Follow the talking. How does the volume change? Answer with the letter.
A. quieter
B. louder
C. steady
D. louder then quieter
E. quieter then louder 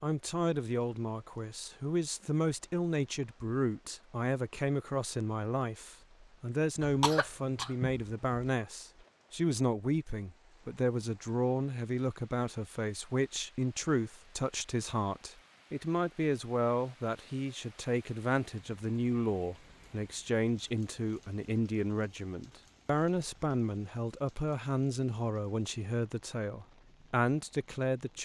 C.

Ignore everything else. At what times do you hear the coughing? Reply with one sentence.
You can hear the coughing from 6.8 to 8.4 s.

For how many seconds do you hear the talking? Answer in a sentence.
The talking can be heard for 28 seconds in total.